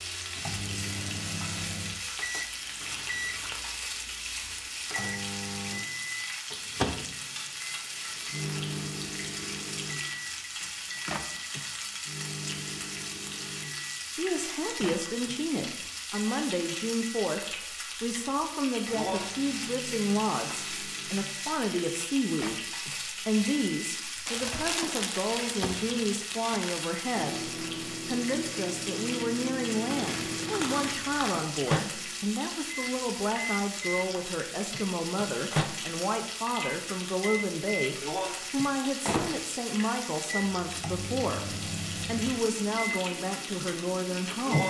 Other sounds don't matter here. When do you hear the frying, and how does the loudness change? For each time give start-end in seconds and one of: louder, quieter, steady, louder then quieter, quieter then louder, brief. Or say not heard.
0.0-44.6 steady.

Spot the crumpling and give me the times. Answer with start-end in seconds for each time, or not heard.
2.8-3.6, 24.2-26.8, 29.9-31.4.